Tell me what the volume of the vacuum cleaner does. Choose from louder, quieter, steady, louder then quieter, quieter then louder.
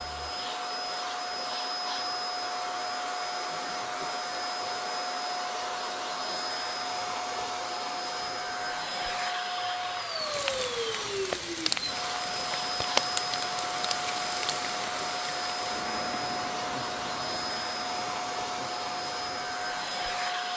steady.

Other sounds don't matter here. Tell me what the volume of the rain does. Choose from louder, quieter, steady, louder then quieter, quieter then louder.
quieter.